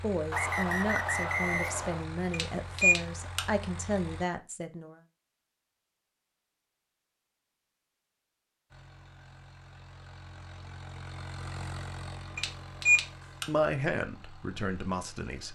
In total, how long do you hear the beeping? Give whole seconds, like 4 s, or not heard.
2 s.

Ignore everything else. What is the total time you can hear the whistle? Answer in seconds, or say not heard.
2 s.